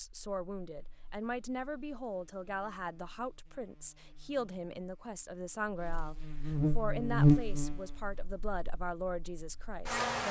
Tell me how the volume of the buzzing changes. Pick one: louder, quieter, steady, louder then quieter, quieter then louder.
louder then quieter.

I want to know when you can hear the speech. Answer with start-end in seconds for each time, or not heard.
0.0-10.2.